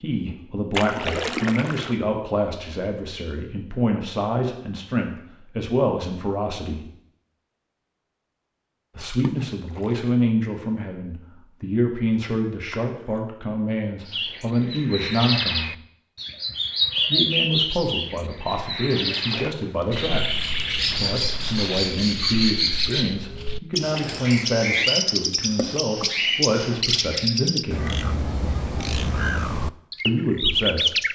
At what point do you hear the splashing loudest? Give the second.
1 s.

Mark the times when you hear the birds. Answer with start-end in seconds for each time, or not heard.
14.1-31.1.